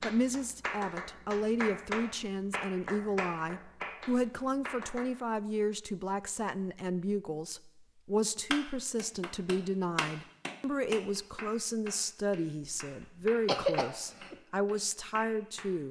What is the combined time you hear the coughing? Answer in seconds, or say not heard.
2 s.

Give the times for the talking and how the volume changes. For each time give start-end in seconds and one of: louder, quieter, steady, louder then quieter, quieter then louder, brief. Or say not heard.
0.0-15.8 steady.